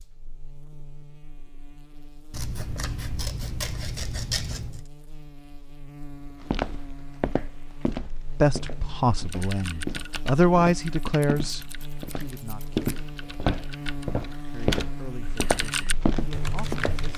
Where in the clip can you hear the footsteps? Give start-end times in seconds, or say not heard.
6.3-17.1.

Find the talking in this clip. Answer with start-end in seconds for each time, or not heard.
8.4-12.8, 14.5-17.1.